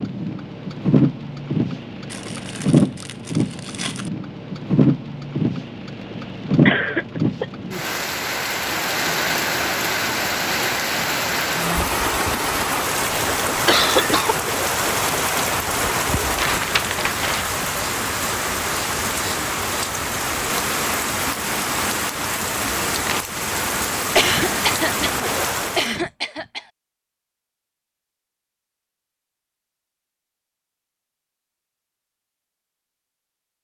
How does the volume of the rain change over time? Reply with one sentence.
The loudness of the rain stays about the same.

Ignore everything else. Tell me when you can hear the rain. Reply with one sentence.
The rain can be heard from 0.0 to 25.9 s.